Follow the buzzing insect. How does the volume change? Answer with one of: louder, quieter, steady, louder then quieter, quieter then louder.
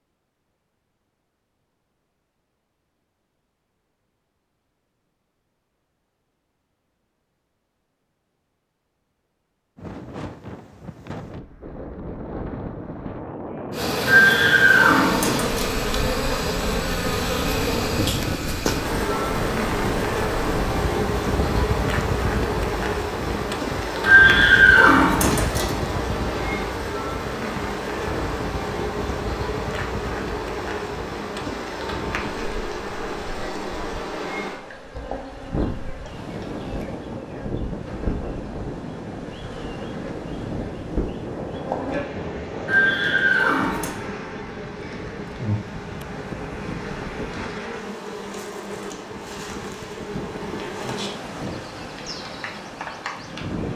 quieter.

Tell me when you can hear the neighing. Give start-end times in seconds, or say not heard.
14.1-15.8, 24.1-25.8, 42.6-44.0.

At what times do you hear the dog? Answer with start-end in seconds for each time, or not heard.
not heard.